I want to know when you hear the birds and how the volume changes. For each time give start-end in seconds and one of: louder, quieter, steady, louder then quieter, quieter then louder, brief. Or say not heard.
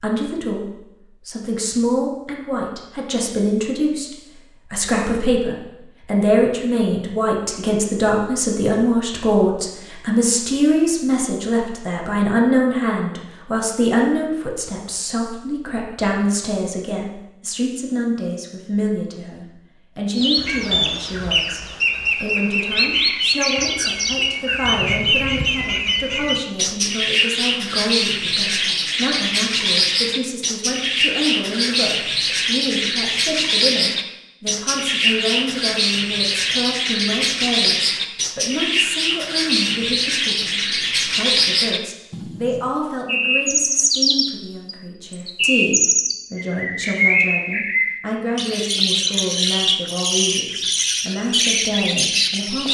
20.1-52.6 steady.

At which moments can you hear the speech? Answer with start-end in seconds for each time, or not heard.
0.0-52.6.